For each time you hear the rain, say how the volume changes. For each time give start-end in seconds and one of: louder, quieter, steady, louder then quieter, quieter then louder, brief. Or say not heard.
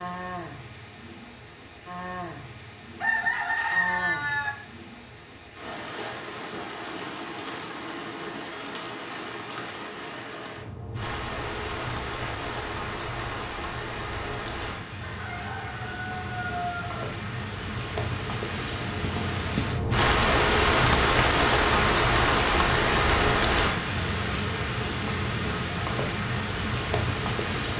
0.0-27.7 louder.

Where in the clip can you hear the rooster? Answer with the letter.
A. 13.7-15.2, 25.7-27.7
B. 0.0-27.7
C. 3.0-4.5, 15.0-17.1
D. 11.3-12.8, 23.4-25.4
C.